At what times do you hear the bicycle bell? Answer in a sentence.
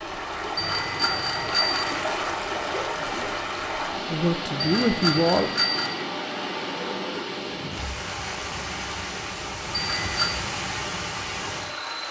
The bicycle bell can be heard from 0.6 to 2.0 s, from 4.6 to 6.0 s and from 9.7 to 10.3 s.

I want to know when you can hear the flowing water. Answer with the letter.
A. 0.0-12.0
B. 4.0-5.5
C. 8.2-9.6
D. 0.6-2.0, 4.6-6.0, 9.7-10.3
A.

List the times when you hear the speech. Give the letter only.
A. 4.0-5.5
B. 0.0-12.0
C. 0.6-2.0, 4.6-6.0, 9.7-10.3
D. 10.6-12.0
A.